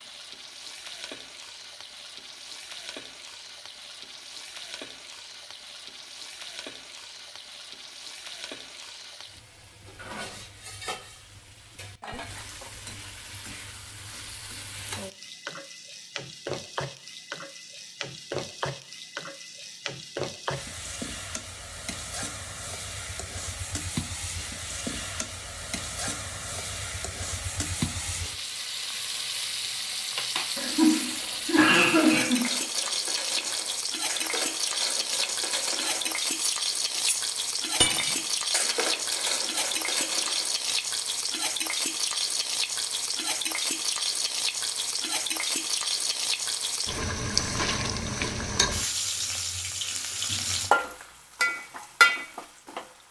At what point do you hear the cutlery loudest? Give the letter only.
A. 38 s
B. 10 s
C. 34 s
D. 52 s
A.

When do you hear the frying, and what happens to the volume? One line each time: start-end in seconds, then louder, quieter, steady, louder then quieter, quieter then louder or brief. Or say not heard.
0.0-53.0 louder.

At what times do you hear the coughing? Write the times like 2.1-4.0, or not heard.
30.6-32.5.